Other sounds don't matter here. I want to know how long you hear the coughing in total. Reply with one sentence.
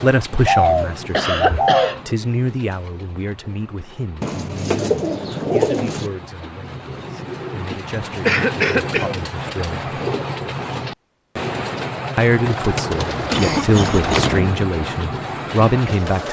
You can hear the coughing for 3 seconds altogether.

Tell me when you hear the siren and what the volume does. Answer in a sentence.
You can't hear the siren here.